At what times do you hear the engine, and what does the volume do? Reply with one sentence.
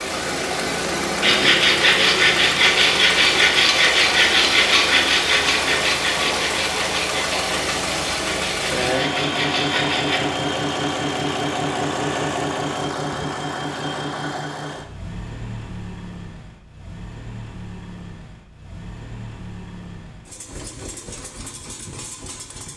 You can hear the engine from 0.0 to 22.7 s, getting quieter.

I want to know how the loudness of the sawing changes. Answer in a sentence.
The volume of the sawing goes down.